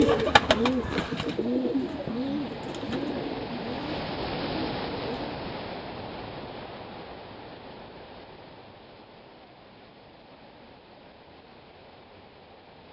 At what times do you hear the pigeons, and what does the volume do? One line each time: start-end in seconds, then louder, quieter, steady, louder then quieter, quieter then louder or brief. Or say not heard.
0.0-5.4 quieter.